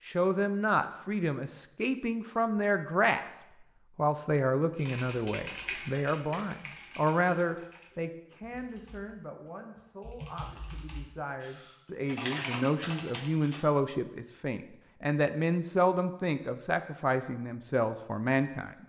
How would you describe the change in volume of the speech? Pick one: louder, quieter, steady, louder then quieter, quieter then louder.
quieter then louder.